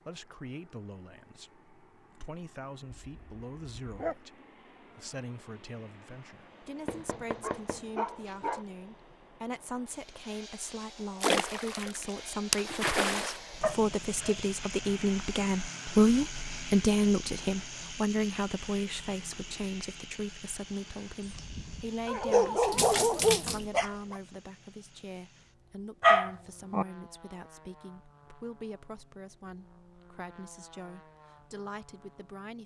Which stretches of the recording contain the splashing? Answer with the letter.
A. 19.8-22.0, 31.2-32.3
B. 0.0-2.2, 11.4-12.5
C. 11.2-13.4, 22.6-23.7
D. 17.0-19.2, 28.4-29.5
C.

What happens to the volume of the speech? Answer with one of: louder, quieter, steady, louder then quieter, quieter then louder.
louder then quieter.